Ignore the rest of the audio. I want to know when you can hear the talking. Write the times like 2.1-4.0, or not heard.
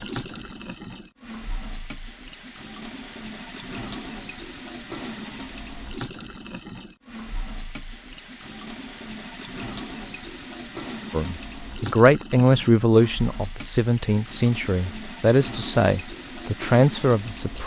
11.1-17.6.